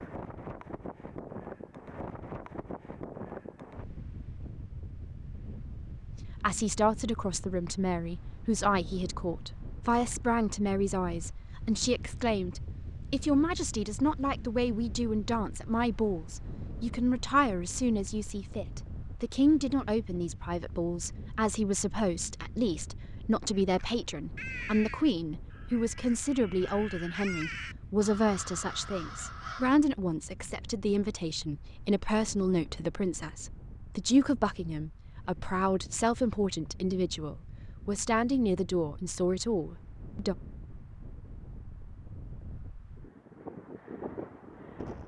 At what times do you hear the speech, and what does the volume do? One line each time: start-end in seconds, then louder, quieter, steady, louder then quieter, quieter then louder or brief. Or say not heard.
6.4-40.4 steady.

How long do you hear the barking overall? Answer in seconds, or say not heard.
not heard.